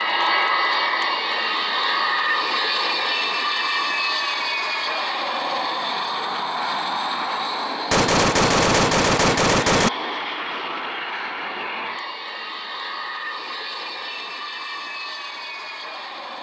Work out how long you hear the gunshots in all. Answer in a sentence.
The gunshots can be heard for 2 seconds in total.